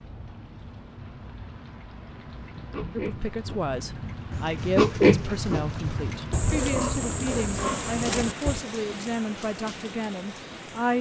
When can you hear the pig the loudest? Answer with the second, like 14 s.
5 s.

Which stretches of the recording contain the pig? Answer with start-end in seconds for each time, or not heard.
1.6-8.6.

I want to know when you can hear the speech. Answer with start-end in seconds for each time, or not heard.
3.0-10.9.